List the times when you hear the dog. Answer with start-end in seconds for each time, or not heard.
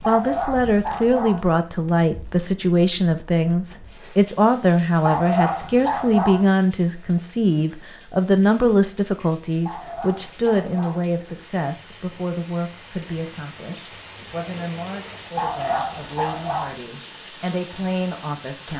0.0-1.4, 5.0-6.5, 9.6-11.1, 15.3-16.8.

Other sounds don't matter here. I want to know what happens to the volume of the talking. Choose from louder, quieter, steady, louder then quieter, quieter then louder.
quieter.